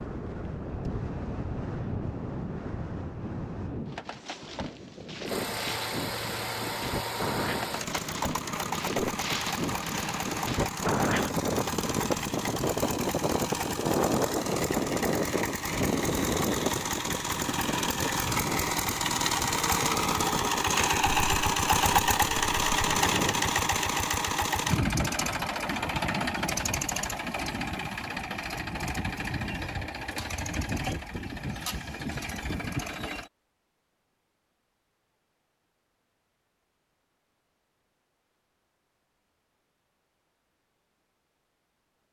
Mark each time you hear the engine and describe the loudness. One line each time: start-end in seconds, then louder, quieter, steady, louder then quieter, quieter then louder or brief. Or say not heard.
5.2-33.3 louder then quieter.